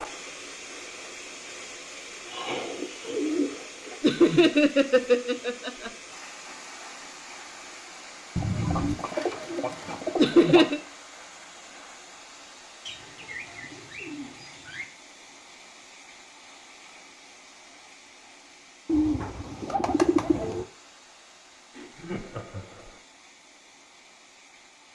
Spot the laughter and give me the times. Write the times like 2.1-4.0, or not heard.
4.0-5.9, 10.2-10.8, 21.8-22.9.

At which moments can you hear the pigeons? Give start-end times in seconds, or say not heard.
2.2-4.0, 8.3-10.8, 12.8-14.8, 18.9-20.6.